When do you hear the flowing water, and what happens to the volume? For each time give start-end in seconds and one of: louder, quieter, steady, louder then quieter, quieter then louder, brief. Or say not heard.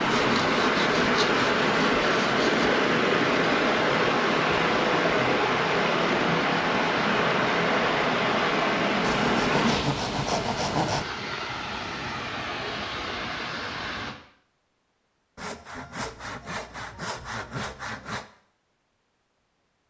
0.0-14.2 quieter.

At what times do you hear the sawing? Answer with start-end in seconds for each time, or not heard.
0.1-2.7, 9.0-11.1, 15.3-18.2.